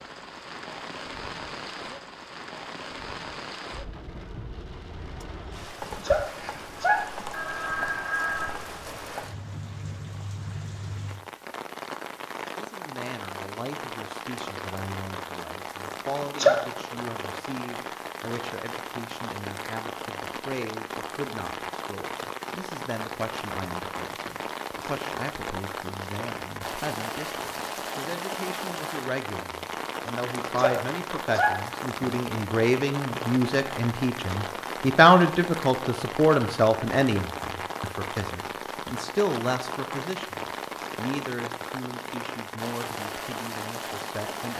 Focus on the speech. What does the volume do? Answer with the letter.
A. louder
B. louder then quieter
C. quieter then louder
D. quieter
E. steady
B.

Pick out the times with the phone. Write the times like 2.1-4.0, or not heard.
7.3-8.5.